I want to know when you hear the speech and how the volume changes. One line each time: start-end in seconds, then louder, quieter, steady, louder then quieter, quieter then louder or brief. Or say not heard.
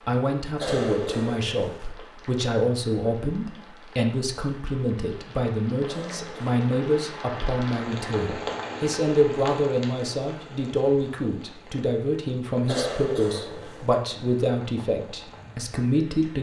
0.1-16.3 steady.